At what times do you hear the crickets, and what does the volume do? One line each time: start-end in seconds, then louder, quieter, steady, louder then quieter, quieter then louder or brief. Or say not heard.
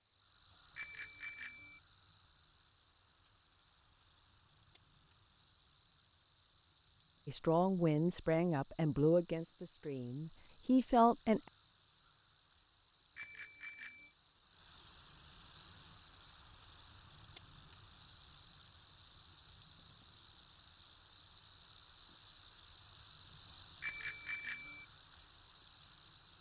0.0-26.3 louder.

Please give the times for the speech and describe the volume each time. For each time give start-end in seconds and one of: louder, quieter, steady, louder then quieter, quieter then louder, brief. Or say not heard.
7.2-11.4 quieter then louder.